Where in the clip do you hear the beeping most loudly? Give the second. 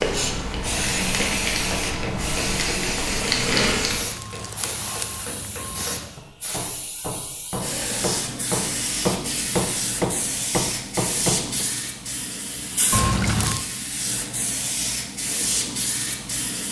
13 s.